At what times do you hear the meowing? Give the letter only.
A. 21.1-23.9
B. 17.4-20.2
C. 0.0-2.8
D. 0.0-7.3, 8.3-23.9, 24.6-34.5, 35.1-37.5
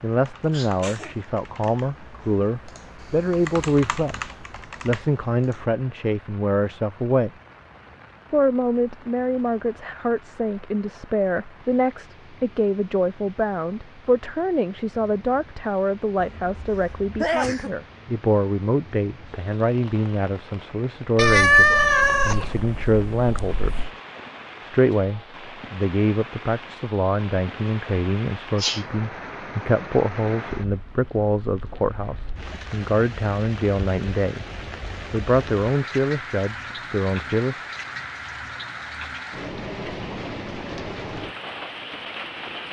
A.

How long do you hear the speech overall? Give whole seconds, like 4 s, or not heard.
35 s.